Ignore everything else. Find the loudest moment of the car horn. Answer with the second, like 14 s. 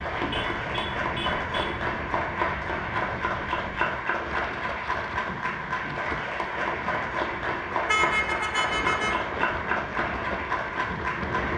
8 s.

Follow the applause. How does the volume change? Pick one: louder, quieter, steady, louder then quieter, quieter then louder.
steady.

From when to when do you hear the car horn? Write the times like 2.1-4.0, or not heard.
0.3-1.9, 7.8-9.2.